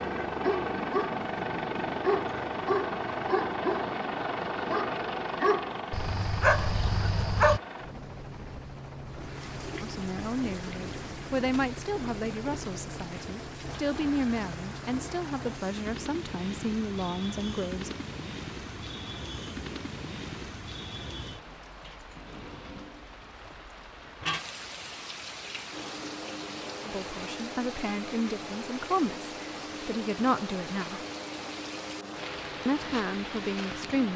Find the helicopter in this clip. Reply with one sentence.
You can hear the helicopter from 0.0 to 20.6 s and from 25.7 to 34.1 s.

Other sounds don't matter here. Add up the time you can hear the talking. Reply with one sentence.
The talking can be heard for 14 seconds in total.